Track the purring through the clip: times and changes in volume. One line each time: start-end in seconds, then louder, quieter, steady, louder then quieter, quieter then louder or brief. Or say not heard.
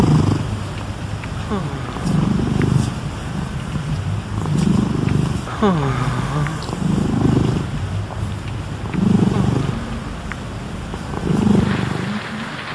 0.0-12.7 steady.